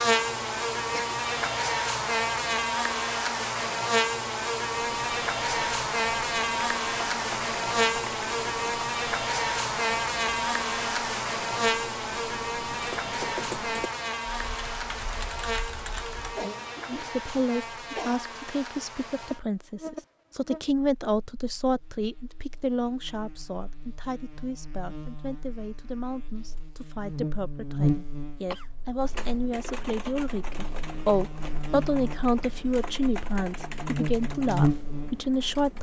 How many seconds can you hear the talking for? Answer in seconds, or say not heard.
19 s.